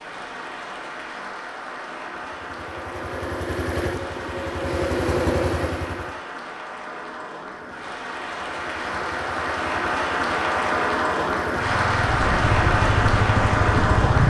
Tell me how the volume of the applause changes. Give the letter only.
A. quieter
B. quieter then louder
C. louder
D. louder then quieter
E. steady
C.